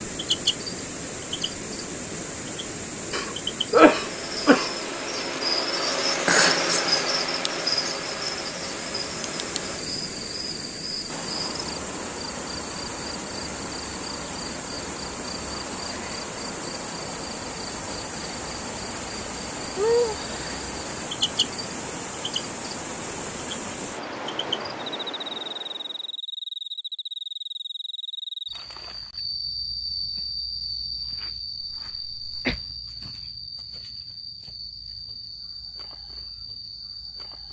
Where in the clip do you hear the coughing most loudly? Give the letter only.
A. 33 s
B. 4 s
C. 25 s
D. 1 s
B.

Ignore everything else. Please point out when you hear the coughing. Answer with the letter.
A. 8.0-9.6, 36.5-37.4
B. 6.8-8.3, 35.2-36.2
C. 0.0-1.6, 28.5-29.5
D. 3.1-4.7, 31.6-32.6
D.